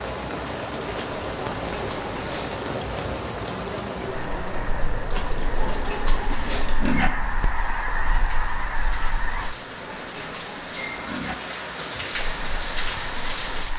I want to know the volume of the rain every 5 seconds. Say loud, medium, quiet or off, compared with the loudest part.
loud, medium, loud.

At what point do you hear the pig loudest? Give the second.
7 s.